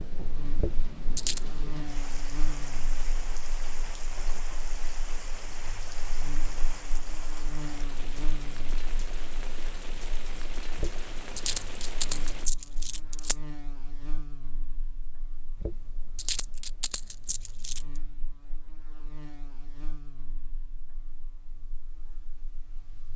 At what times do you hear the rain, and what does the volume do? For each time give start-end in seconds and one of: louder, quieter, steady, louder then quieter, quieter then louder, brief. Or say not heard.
0.0-12.5 steady.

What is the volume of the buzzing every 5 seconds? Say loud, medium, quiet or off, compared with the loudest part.
loud, loud, loud, medium, quiet.